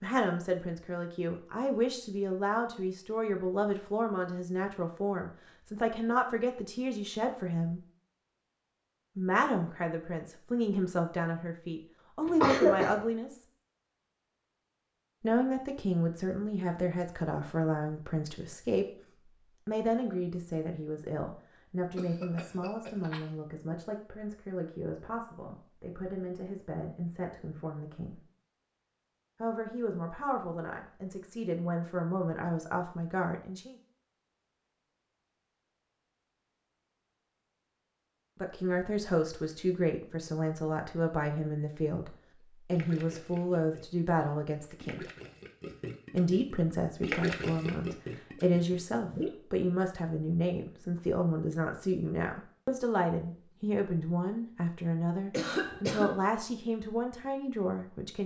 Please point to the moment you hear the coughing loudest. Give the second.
13 s.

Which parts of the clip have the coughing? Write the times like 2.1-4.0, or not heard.
12.4-13.0, 21.9-23.2, 55.3-56.2.